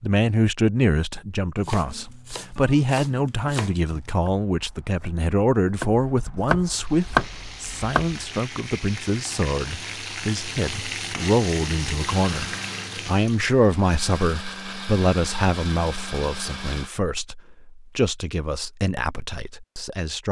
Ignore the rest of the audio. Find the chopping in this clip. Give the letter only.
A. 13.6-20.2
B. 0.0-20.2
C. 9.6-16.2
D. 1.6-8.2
D.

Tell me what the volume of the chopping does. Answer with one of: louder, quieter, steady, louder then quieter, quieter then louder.
quieter then louder.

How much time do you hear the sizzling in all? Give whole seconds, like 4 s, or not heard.
7 s.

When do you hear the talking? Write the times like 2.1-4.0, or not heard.
0.0-20.2.